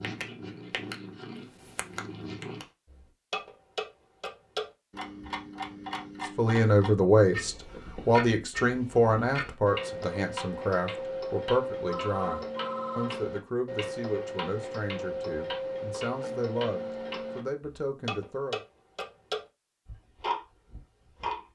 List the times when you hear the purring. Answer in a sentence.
The purring can be heard from 0.0 to 2.6 s.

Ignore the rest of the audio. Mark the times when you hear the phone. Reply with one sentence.
You can hear the phone from 11.8 to 13.2 s.